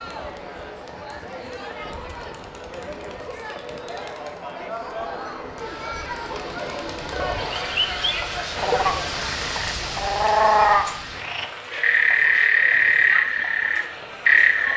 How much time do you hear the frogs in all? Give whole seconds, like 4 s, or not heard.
7 s.